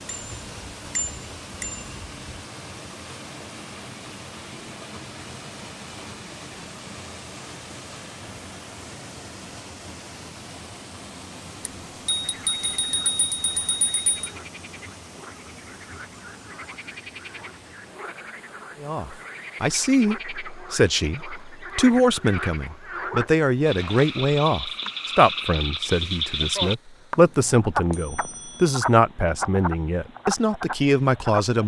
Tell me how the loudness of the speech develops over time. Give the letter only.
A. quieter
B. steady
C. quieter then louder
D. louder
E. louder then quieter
B.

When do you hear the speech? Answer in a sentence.
The speech can be heard from 18.8 to 31.6 s.